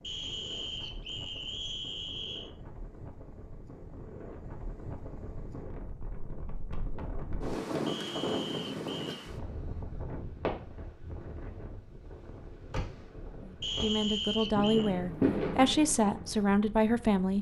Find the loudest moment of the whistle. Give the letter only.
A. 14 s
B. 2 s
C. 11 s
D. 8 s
A.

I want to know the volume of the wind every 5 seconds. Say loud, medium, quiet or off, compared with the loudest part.
medium, loud, medium, quiet.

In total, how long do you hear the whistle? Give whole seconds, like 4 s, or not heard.
5 s.